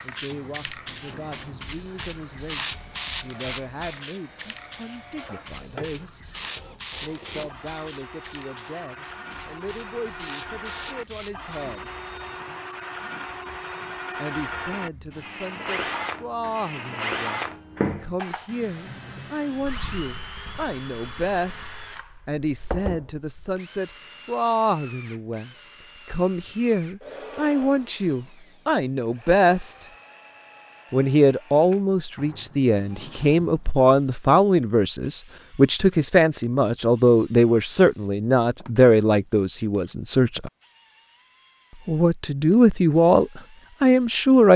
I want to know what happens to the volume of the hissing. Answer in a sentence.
The loudness of the hissing goes down.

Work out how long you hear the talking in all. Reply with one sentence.
The talking can be heard for 40 seconds in total.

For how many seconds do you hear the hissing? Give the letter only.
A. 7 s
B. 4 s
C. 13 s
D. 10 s
C.